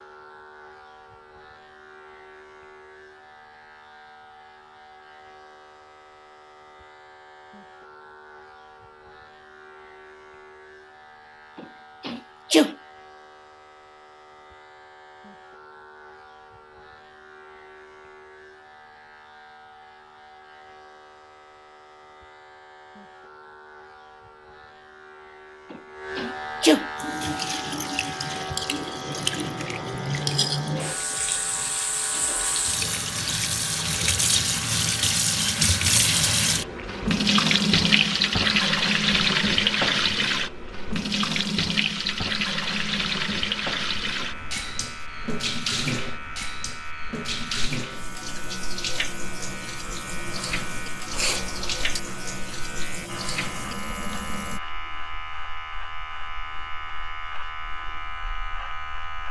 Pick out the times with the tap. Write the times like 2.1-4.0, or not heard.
26.9-54.6.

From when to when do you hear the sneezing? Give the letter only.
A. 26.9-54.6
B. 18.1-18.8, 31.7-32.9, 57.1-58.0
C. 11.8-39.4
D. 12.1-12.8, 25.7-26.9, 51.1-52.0
D.